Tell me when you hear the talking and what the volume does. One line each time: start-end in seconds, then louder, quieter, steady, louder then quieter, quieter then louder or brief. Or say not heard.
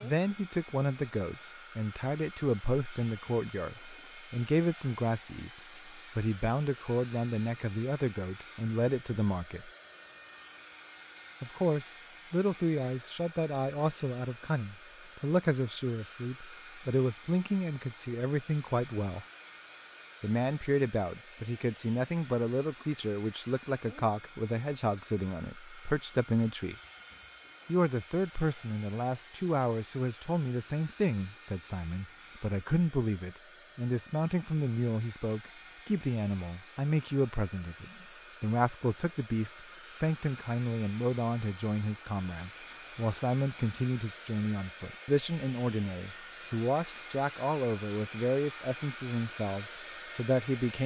0.0-9.7 steady
11.4-19.2 steady
20.2-26.8 steady
27.6-50.8 steady.